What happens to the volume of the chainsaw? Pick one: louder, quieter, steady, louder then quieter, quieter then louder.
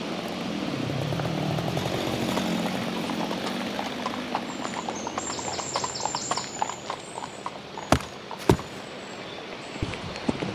quieter.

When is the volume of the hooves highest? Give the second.
8 s.